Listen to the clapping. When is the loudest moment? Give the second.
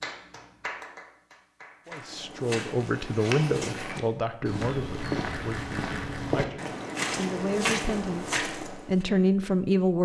1 s.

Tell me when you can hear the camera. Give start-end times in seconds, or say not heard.
5.0-6.2.